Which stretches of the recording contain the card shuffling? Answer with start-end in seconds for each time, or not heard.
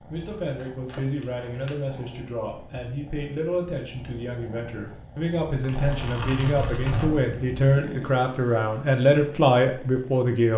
0.6-1.9, 5.6-7.3.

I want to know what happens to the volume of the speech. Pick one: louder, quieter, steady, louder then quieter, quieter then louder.
louder.